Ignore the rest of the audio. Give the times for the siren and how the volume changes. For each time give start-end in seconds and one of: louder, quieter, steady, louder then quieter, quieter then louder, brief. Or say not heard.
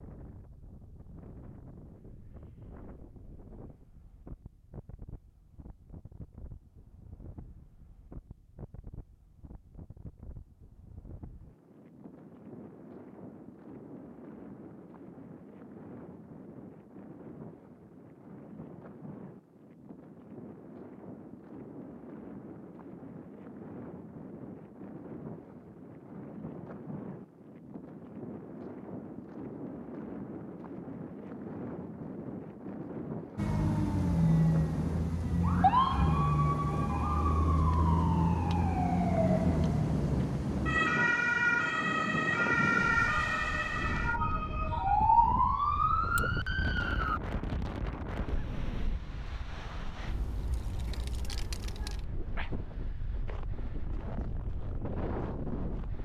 33.4-47.2 steady.